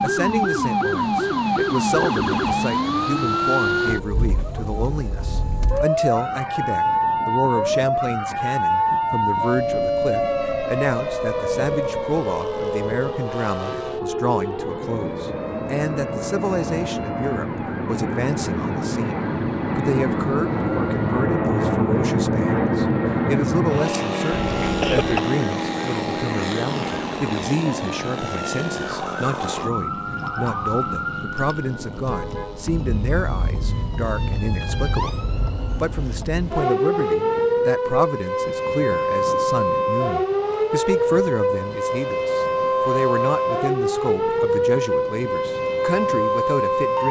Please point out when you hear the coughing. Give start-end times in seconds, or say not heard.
24.3-25.2.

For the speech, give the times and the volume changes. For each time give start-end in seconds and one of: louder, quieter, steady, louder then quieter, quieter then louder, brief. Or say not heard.
0.0-47.0 steady.